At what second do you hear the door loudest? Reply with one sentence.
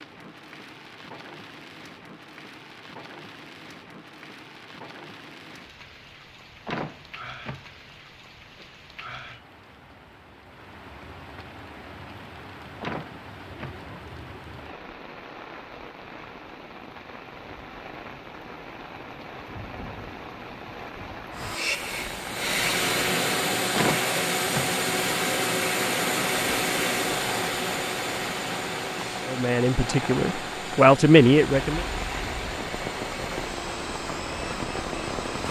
The loudest moment of the door is at 24 seconds.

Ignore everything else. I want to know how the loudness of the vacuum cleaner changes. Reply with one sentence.
The volume of the vacuum cleaner goes down.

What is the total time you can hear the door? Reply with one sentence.
The door can be heard for 3 seconds in total.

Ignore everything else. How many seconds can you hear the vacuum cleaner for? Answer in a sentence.
You can hear the vacuum cleaner for 14 seconds altogether.